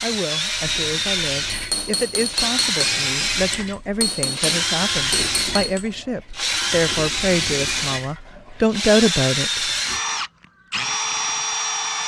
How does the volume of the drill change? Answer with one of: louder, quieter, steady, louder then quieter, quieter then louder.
steady.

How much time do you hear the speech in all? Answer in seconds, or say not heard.
10 s.